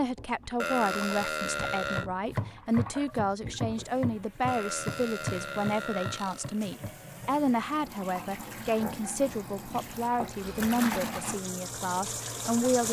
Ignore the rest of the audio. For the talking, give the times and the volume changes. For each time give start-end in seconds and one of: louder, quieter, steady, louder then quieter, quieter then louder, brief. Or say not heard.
0.0-12.8 steady.